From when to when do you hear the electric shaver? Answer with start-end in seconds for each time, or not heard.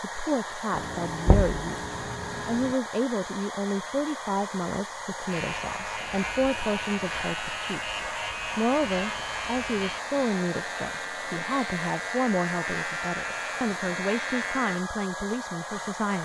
5.2-14.8.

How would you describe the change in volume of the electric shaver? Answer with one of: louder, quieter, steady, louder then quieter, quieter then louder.
steady.